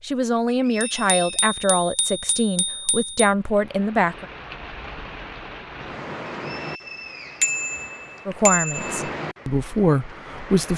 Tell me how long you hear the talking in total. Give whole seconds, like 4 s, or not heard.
7 s.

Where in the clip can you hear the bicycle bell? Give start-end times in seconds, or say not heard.
0.8-3.1, 7.4-9.1.